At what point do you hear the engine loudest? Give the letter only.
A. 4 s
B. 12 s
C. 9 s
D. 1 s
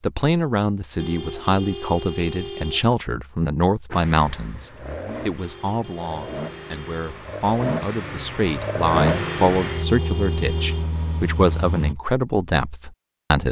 C.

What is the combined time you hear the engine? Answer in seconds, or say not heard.
8 s.